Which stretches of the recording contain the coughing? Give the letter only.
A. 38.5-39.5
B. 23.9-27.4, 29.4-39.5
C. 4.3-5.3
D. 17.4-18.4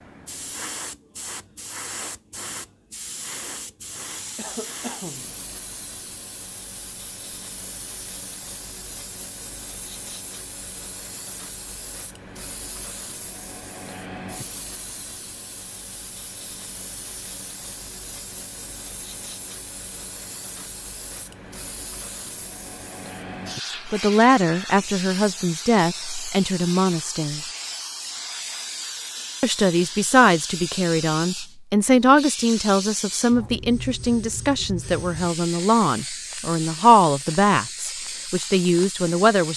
C.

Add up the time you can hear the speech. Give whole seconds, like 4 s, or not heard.
14 s.